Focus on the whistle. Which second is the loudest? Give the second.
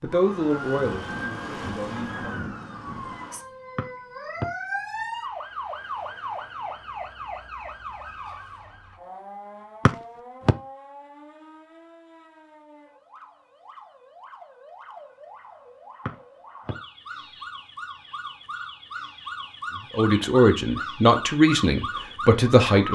10 s.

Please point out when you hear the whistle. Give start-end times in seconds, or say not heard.
3.8-4.5, 9.8-10.6, 16.1-17.5.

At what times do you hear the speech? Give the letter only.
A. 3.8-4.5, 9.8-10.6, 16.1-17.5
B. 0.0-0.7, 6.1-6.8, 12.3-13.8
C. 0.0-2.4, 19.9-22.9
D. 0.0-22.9
C.